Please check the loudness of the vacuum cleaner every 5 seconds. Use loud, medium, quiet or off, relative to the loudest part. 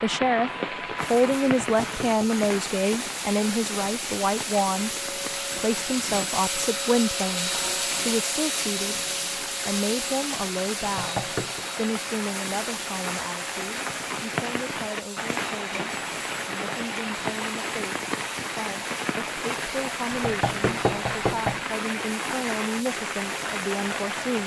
medium, loud, medium, medium, medium.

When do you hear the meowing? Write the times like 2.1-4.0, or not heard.
not heard.